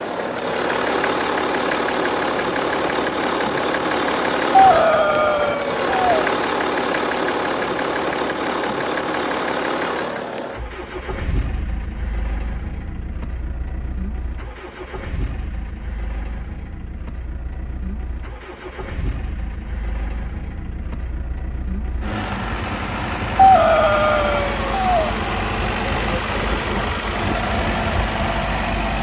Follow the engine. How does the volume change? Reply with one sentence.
The loudness of the engine goes down, then up.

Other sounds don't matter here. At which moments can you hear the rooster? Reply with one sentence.
You can hear the rooster from 4.5 to 6.3 s and from 23.4 to 25.1 s.